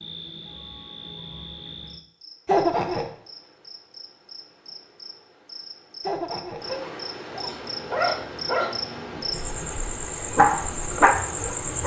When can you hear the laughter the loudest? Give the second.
3 s.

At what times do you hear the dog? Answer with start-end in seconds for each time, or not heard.
7.3-11.8.